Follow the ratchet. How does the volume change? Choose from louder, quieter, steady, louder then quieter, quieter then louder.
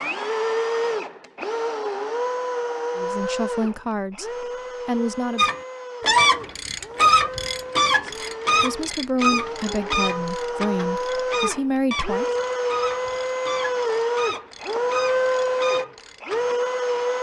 quieter.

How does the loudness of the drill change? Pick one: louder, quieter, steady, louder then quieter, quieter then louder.
quieter then louder.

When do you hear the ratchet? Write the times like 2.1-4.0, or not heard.
5.3-16.6.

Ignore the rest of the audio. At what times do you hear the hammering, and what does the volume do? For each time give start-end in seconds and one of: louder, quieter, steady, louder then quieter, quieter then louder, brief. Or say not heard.
not heard.